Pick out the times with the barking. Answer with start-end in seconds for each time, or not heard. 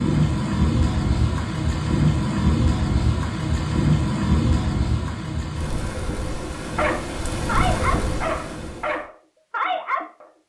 6.8-10.2.